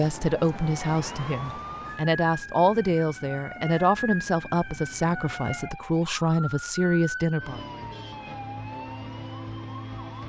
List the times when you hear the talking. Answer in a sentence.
The talking can be heard from 0.0 to 7.7 s.